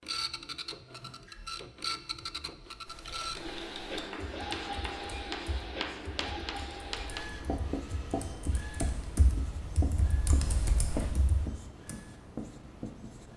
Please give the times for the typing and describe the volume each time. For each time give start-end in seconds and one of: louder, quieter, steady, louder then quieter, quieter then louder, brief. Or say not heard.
2.9-11.9 quieter then louder.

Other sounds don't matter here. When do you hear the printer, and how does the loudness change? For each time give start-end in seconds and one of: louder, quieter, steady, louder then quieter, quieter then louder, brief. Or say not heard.
0.0-13.3 quieter.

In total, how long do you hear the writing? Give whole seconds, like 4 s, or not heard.
9 s.